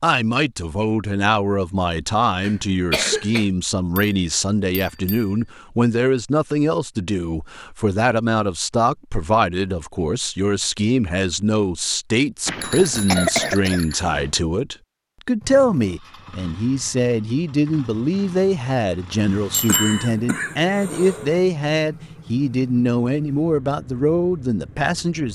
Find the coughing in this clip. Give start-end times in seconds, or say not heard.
2.4-3.5, 12.8-13.8, 19.6-21.4.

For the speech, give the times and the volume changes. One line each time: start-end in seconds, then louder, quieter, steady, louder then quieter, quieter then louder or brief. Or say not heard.
0.0-25.3 steady.